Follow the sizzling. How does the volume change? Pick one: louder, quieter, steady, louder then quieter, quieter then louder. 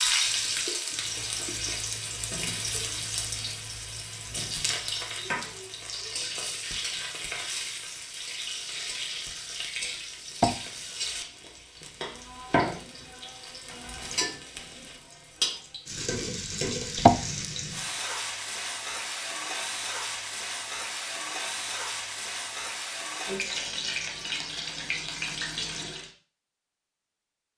steady.